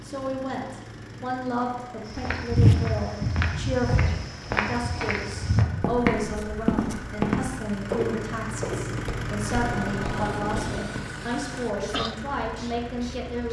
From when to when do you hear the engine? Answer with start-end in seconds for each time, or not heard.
0.0-13.4.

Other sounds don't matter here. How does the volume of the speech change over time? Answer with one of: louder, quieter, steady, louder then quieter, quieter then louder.
steady.